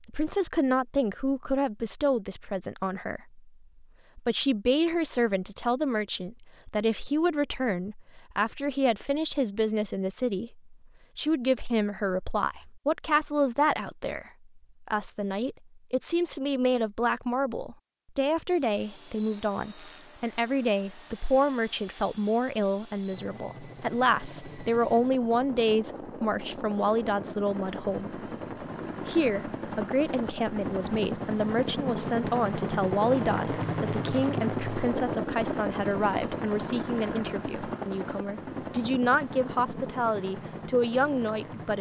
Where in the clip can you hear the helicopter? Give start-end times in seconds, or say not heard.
18.6-41.7.